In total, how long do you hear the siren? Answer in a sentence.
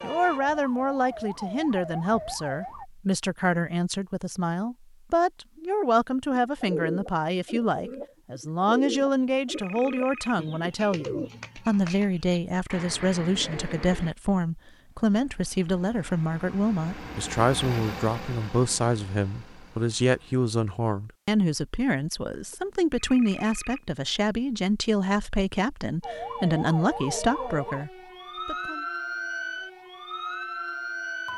The siren can be heard for 8 seconds in total.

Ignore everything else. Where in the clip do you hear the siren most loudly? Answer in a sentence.
The volume of the siren peaks at 29 seconds.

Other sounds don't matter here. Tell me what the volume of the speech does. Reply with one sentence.
The loudness of the speech stays about the same.